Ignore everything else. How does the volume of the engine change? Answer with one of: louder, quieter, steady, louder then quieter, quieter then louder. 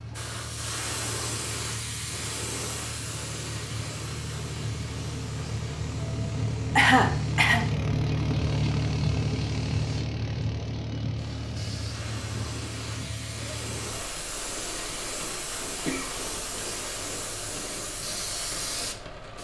louder then quieter.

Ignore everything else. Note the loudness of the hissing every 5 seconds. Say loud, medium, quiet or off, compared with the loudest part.
loud, medium, loud, loud.